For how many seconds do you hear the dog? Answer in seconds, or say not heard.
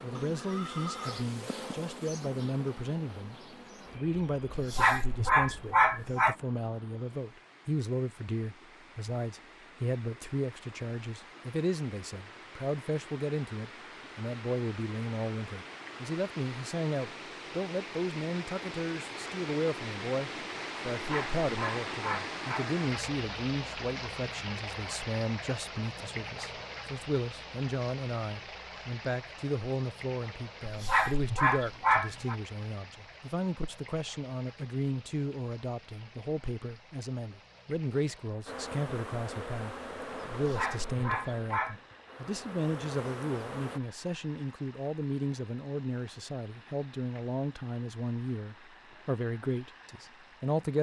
7 s.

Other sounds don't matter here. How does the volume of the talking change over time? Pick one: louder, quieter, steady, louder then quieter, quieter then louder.
steady.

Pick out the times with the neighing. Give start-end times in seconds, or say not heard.
0.2-1.2.